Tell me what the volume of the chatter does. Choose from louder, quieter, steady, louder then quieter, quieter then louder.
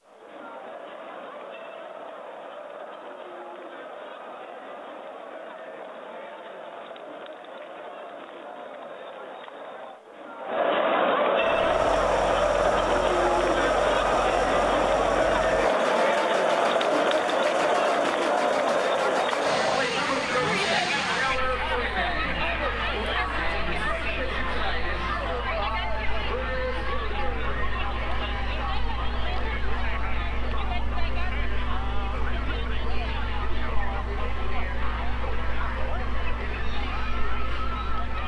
louder then quieter.